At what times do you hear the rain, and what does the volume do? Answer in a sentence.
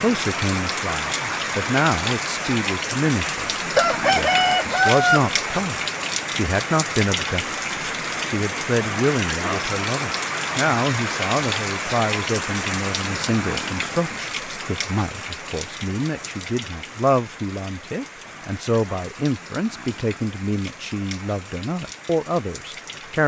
You can hear the rain from 0.0 to 23.2 s, getting quieter.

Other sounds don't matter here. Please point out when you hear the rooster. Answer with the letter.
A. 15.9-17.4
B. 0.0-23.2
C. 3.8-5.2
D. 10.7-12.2
C.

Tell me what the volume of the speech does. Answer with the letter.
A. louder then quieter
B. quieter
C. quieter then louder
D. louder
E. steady
E.